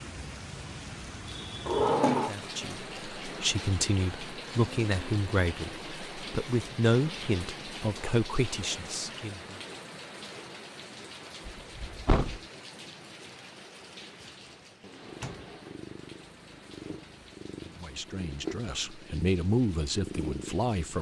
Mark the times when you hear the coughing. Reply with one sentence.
The coughing can't be heard in this clip.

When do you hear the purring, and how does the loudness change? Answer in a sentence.
You can hear the purring from 14.9 to 20.9 s, getting louder.